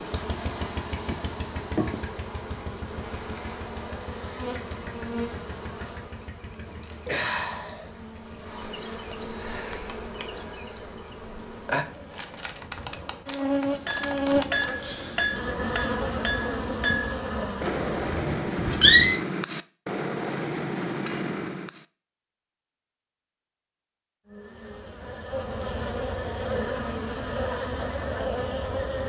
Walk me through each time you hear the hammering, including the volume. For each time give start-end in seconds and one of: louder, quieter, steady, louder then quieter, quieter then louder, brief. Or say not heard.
13.7-21.9 steady.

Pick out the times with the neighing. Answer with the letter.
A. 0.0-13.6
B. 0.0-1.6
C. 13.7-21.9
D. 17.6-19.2
D.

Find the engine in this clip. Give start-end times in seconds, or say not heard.
0.0-13.6.